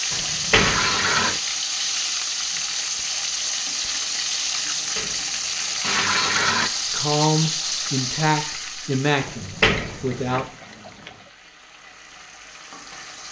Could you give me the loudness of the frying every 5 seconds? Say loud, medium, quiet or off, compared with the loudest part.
loud, loud, quiet.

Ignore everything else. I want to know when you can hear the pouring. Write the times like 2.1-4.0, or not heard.
0.5-1.4, 5.8-6.7, 9.9-11.3.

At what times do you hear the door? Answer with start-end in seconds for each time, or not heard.
0.1-1.4, 4.5-5.8, 9.2-10.4.